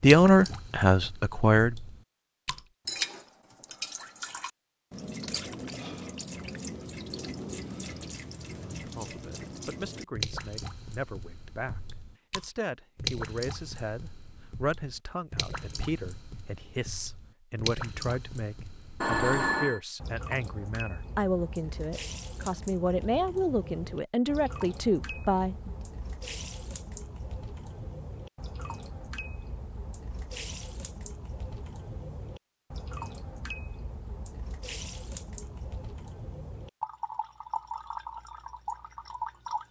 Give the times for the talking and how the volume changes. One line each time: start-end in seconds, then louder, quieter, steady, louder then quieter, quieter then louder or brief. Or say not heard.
0.0-1.8 brief
8.8-25.7 louder.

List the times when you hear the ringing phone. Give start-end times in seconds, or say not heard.
19.0-19.8.